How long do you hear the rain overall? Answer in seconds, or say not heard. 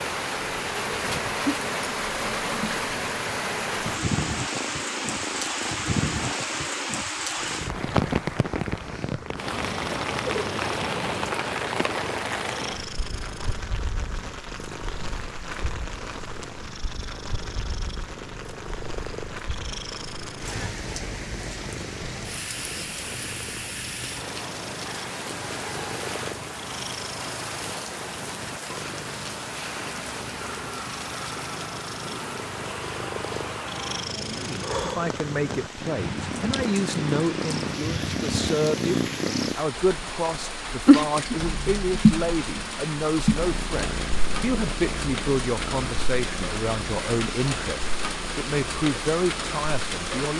50 s.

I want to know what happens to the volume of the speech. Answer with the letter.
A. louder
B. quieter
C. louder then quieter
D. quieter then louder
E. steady
E.